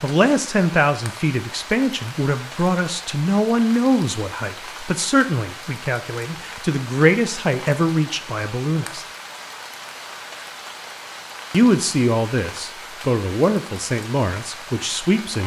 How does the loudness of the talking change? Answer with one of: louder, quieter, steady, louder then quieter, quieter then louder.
steady.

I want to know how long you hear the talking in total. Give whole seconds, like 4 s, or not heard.
13 s.